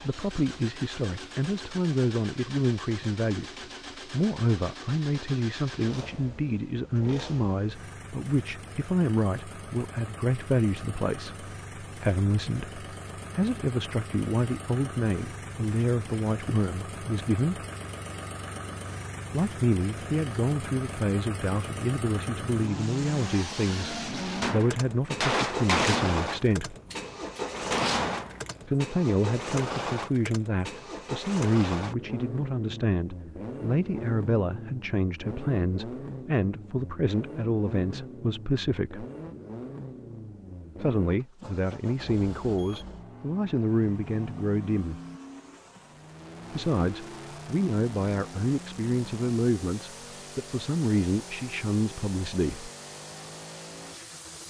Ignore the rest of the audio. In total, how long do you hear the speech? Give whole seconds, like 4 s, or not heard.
45 s.